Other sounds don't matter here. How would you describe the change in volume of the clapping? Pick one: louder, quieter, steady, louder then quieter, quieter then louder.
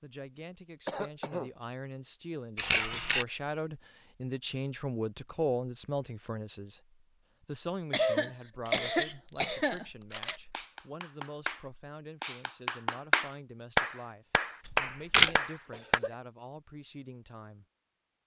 louder.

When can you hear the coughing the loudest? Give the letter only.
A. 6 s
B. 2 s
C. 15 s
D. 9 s
D.